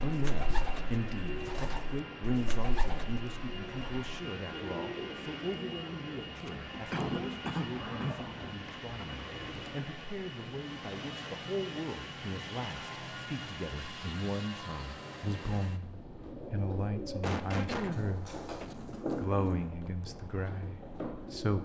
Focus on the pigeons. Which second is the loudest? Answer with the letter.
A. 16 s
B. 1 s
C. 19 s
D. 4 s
C.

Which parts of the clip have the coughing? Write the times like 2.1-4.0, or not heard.
6.3-8.7, 17.2-18.7.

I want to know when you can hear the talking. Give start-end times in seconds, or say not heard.
0.0-18.4, 19.1-21.6.